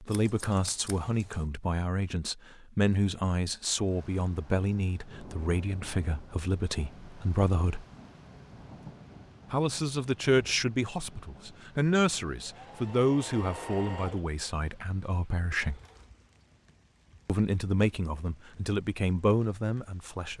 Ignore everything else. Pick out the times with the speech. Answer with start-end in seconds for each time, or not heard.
0.0-7.8, 9.5-15.8, 17.2-20.3.